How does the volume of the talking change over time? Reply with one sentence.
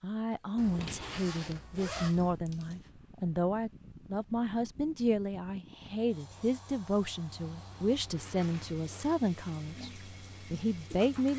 The loudness of the talking stays about the same.